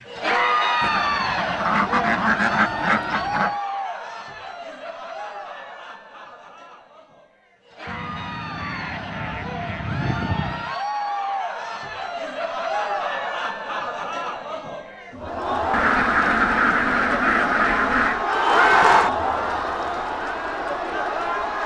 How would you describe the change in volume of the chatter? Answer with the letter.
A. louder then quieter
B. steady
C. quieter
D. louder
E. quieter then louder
E.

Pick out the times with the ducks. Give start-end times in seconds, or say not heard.
0.8-3.5, 7.8-10.8, 15.7-18.2.